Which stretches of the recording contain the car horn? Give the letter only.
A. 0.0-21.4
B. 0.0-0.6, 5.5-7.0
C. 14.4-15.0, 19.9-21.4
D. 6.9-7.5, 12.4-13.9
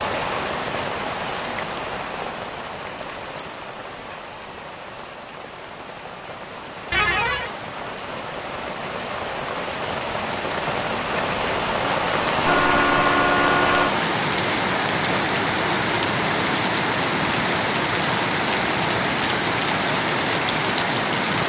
D.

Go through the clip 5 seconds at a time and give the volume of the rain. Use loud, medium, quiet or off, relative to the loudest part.
medium, medium, loud, loud, loud.